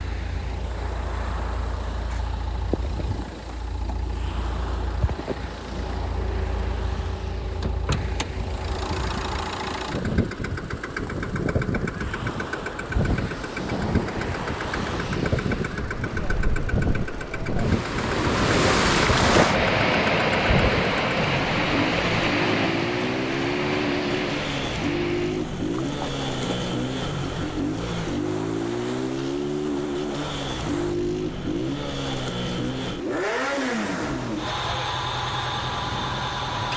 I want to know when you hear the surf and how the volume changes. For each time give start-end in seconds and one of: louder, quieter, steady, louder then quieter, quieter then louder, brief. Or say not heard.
0.0-36.7 louder then quieter.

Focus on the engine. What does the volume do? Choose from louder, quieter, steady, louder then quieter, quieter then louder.
louder.